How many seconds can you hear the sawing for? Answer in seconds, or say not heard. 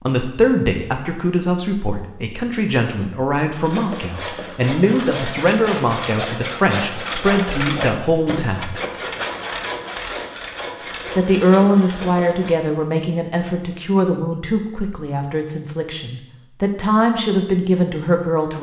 9 s.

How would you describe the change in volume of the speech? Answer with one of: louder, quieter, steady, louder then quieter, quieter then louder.
steady.